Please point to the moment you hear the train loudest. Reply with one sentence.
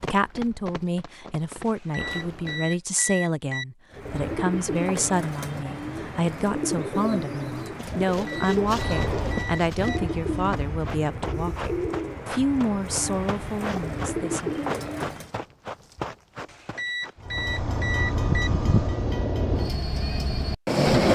The loudest moment of the train is at 21 seconds.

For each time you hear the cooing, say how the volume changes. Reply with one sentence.
The cooing can be heard from 3.9 to 15.3 s, at a steady volume.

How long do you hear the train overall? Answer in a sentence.
The train can be heard for 6 seconds in total.